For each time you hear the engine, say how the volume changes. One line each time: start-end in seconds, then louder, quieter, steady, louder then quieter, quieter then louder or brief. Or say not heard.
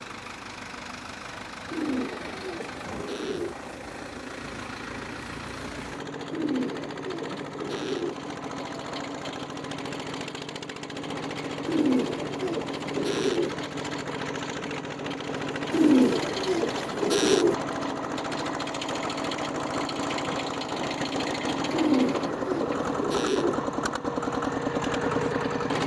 0.0-25.8 louder.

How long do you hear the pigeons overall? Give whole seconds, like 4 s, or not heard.
9 s.